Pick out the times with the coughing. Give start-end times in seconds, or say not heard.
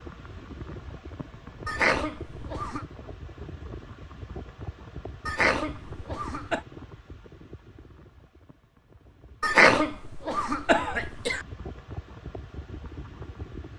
1.6-2.9, 5.2-6.6, 9.4-11.4.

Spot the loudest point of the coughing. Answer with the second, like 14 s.
10 s.